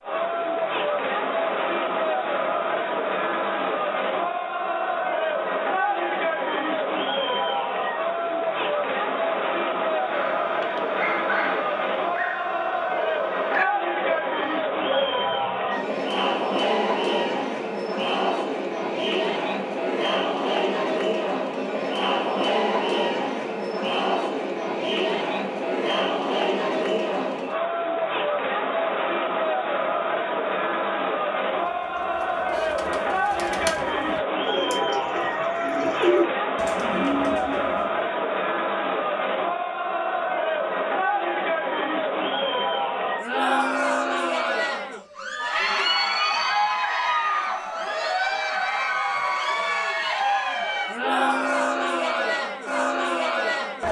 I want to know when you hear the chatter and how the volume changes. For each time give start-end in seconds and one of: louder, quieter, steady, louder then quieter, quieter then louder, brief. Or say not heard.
0.0-53.8 steady.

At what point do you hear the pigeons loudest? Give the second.
36 s.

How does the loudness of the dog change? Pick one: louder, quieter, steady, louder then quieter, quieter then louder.
quieter then louder.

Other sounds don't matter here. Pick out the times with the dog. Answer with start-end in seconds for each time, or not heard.
10.0-15.8.